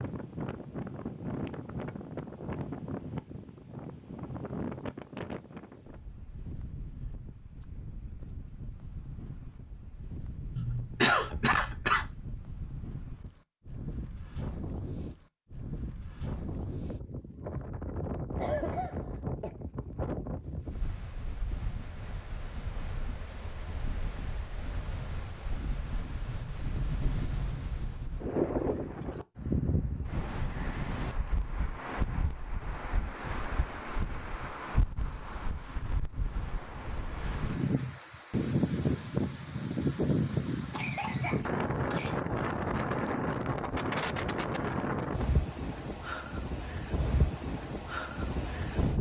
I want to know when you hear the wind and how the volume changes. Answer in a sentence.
You can hear the wind from 0.0 to 48.9 s, getting louder.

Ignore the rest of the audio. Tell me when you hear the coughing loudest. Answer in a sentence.
The volume of the coughing peaks at 11 seconds.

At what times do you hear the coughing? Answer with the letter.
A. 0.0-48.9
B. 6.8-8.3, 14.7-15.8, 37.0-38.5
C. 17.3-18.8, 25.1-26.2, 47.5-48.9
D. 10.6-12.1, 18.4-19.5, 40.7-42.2
D.